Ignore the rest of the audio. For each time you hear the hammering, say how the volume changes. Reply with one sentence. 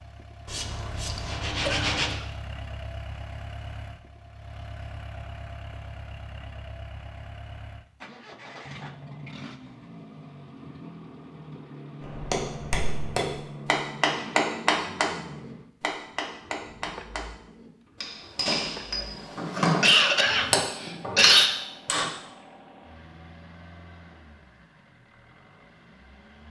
You can hear the hammering from 12.0 to 22.1 s, getting quieter then louder.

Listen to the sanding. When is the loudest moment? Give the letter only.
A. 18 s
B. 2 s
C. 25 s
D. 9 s
B.